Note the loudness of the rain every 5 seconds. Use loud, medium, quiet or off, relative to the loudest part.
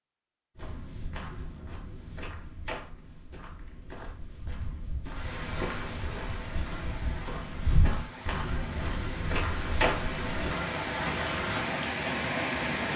off, medium, loud.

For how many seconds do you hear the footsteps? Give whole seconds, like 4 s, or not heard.
10 s.